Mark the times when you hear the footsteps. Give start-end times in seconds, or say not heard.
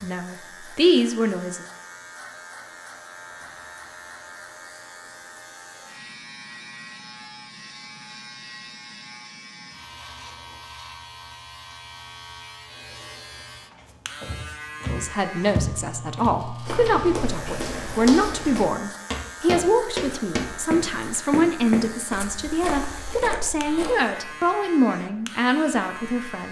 13.8-23.9.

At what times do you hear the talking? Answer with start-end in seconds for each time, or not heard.
0.0-1.6, 14.8-26.4.